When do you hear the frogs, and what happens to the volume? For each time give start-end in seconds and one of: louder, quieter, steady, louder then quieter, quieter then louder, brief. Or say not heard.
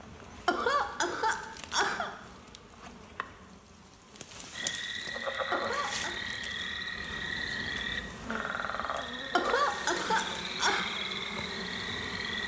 4.5-12.4 steady.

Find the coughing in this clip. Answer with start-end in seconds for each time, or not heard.
0.5-2.1, 5.5-6.2, 9.3-10.8.